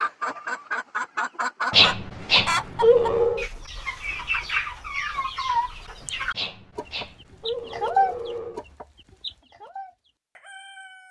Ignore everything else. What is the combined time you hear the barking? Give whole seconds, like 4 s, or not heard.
4 s.